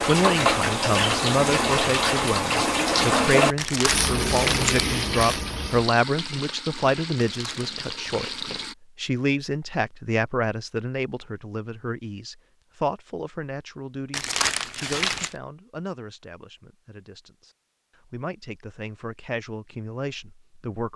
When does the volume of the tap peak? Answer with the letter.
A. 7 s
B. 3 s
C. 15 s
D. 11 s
B.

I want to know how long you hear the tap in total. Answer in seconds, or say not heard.
9 s.